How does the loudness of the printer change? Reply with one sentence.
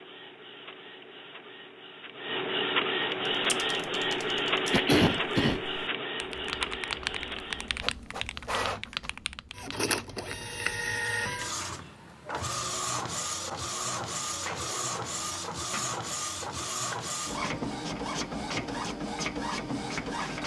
The volume of the printer stays about the same.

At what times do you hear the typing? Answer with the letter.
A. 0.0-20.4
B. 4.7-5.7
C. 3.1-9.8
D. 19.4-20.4
C.